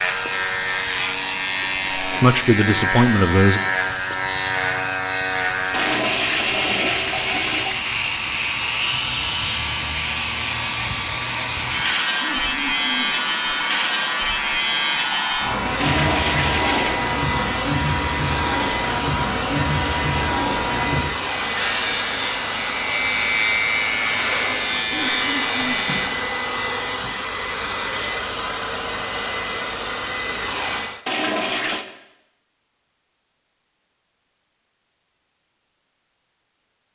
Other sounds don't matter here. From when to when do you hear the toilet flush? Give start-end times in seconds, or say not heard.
5.7-7.8, 15.8-17.0, 31.1-31.9.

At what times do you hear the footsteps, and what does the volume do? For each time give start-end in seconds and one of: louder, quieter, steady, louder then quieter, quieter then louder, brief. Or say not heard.
not heard.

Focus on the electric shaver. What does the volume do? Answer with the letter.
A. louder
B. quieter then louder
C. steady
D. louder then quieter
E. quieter
C.